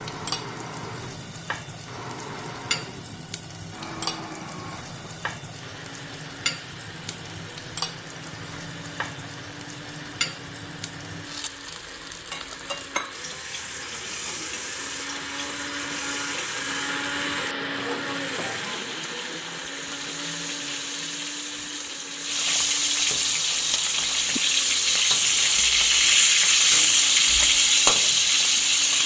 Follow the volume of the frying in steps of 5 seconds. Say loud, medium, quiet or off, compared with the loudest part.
quiet, quiet, quiet, quiet, medium, loud.